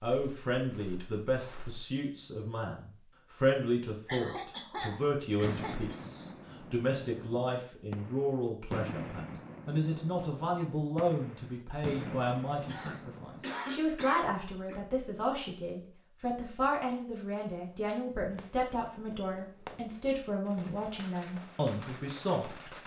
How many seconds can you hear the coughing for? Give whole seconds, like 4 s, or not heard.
4 s.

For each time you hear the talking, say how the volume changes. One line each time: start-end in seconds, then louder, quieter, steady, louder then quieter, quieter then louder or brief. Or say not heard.
0.0-22.7 steady.